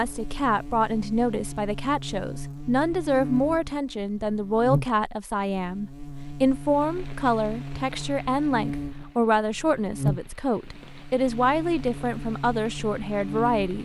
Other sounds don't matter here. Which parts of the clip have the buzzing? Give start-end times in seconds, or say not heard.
0.0-13.7.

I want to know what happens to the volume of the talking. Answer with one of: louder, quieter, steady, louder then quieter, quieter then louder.
steady.